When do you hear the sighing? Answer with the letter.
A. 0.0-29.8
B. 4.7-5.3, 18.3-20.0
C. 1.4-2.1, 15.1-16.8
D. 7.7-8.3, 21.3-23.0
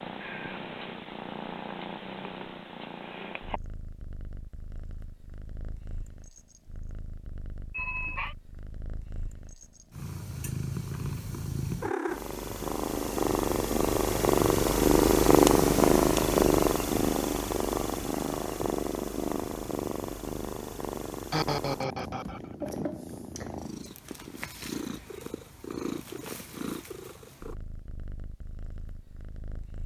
D.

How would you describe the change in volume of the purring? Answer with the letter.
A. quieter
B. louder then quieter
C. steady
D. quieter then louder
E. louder
B.